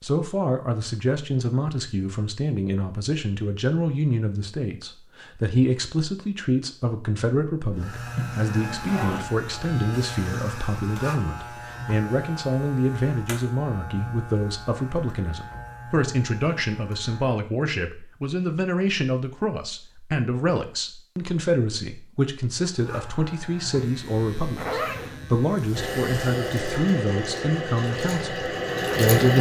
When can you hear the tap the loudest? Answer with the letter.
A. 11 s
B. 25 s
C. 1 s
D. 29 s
D.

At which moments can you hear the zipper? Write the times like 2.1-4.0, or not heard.
8.2-9.3, 24.6-25.2.